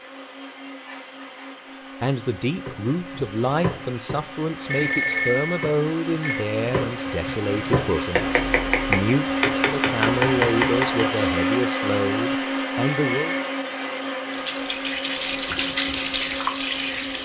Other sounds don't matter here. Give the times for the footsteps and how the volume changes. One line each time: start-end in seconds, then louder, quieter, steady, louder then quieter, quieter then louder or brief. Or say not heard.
not heard.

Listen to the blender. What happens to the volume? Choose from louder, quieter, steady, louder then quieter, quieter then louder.
louder then quieter.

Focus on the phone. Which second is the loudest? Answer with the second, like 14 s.
5 s.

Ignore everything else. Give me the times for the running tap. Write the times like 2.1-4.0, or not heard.
14.3-17.2.